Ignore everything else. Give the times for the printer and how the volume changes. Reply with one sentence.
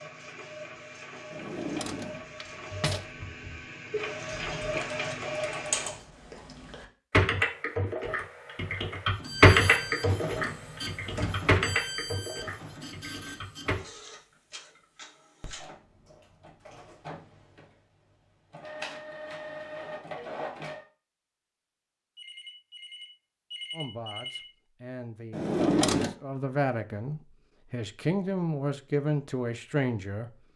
You can hear the printer from 0.0 to 6.0 s, getting louder; and from 9.1 to 20.9 s, getting quieter then louder.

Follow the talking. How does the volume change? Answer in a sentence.
The loudness of the talking goes up.